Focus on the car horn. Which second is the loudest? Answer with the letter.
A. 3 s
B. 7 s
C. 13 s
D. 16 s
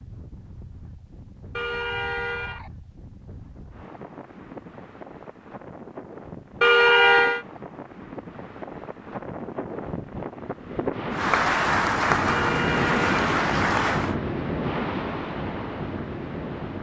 B.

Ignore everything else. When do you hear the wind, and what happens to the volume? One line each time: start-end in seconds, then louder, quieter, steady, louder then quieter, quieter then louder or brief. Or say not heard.
0.0-16.7 louder.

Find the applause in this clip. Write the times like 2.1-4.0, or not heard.
11.1-14.2.